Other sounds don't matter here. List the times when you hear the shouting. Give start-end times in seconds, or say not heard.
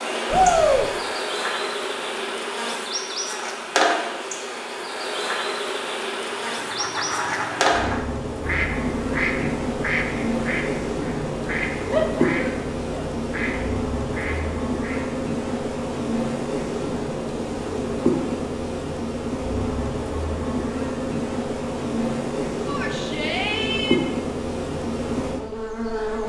0.3-0.9, 11.9-13.1, 22.6-24.0.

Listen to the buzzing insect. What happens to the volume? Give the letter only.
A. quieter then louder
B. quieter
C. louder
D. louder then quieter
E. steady
E.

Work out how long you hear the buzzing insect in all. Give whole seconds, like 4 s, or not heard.
26 s.